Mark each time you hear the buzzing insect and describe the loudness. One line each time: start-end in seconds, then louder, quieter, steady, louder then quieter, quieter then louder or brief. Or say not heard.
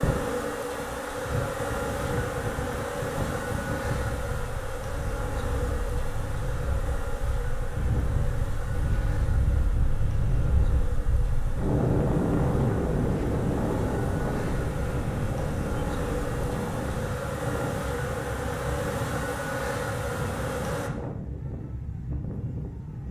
0.0-20.9 quieter then louder.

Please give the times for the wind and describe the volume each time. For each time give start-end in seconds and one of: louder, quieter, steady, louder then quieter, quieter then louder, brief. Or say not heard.
0.0-23.0 louder then quieter.